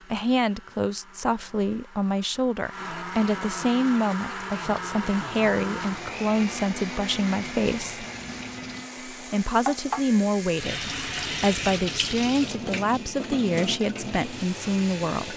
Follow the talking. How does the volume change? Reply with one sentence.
The loudness of the talking stays about the same.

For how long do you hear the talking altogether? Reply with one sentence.
The talking can be heard for 14 seconds in total.